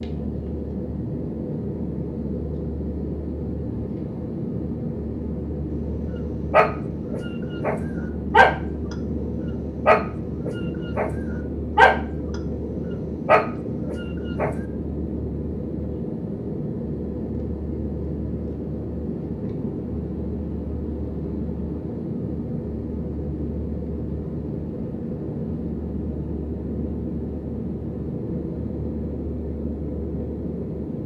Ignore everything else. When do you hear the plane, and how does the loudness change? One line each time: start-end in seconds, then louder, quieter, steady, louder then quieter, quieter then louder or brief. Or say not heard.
0.0-31.0 steady.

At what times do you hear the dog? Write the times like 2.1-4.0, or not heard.
6.0-11.1, 11.8-14.6.